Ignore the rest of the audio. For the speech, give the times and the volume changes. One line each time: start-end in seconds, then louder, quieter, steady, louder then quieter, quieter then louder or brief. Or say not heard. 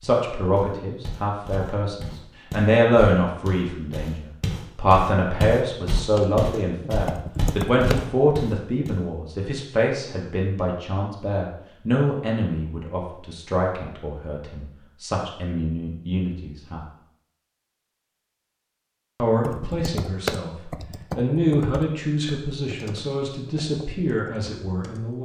0.0-16.9 quieter
19.2-25.2 louder then quieter.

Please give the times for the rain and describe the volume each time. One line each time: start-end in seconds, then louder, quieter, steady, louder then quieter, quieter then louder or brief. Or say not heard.
not heard.